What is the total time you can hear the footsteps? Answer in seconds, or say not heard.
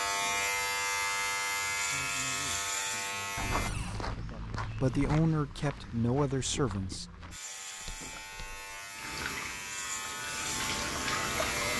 5 s.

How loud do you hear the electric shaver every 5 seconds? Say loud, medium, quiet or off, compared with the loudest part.
loud, medium, loud.